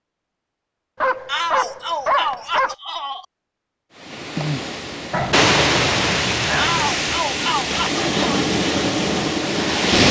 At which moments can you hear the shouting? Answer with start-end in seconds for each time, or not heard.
1.2-3.2, 6.5-8.4.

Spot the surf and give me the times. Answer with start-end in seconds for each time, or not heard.
4.0-10.0.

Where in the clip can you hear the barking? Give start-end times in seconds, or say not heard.
1.0-2.8, 5.1-7.0.